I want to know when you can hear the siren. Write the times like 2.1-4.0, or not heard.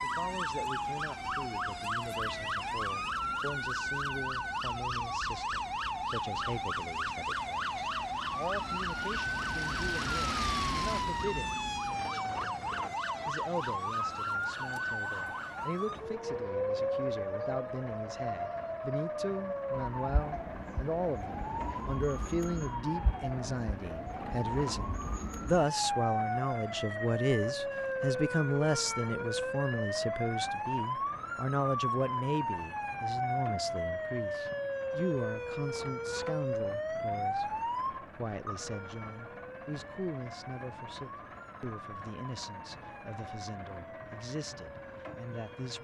0.0-45.8.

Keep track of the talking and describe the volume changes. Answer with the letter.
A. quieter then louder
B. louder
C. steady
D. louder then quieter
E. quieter
D.